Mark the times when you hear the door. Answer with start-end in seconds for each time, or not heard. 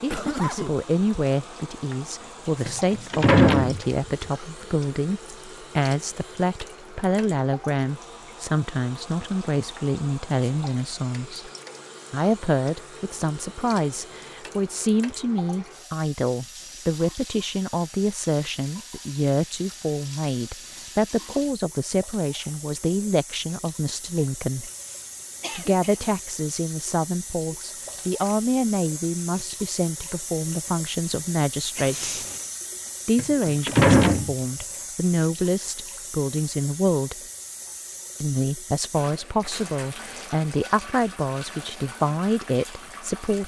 2.6-4.2, 33.1-34.4.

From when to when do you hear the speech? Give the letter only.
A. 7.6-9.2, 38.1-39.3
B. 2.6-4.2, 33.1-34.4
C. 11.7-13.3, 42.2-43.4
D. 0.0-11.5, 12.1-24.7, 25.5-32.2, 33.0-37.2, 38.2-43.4
D.